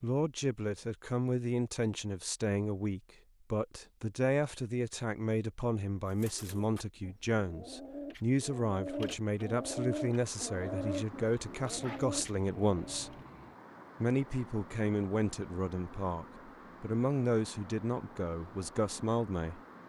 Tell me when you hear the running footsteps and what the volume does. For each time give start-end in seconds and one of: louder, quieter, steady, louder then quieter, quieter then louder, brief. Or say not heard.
not heard.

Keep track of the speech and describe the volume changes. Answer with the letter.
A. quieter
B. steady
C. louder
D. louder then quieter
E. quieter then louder
B.